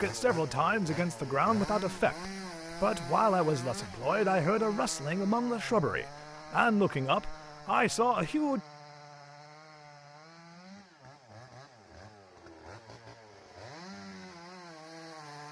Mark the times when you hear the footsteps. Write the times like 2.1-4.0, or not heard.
not heard.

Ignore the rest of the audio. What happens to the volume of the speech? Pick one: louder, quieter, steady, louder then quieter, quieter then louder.
steady.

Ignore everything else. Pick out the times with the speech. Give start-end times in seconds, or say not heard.
0.0-8.6.